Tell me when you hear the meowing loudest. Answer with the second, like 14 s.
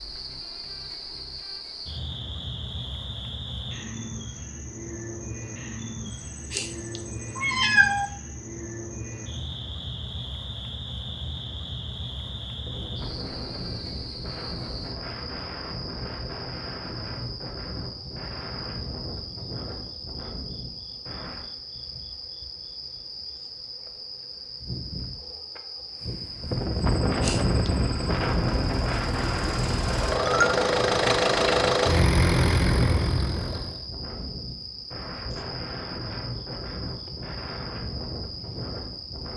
8 s.